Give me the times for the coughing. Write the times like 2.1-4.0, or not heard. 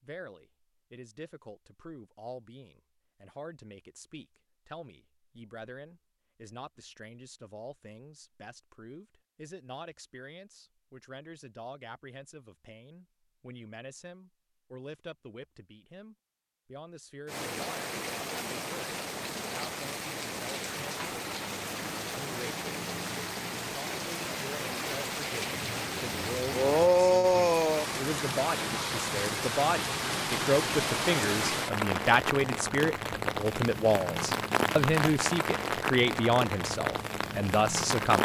not heard.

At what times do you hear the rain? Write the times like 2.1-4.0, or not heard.
17.3-38.2.